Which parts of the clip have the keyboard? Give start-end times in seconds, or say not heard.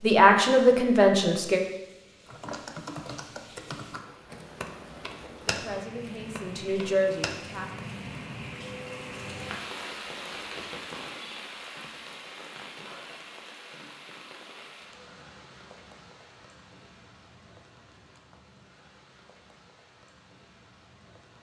2.2-7.7.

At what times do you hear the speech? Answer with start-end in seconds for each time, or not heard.
0.0-1.6, 5.4-7.7.